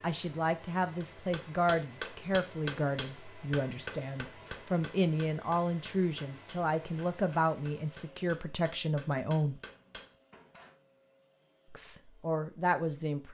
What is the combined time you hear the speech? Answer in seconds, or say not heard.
11 s.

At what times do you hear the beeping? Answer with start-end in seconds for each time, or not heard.
not heard.